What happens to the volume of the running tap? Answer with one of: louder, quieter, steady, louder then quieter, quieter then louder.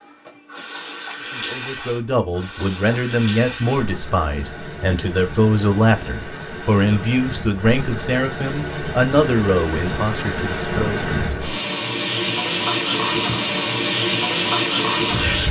louder.